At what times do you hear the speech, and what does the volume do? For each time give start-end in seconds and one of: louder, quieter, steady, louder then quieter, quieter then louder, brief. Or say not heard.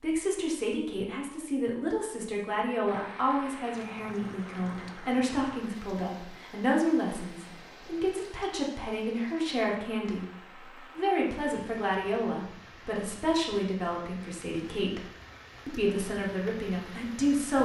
0.0-15.1 steady
15.7-17.6 brief.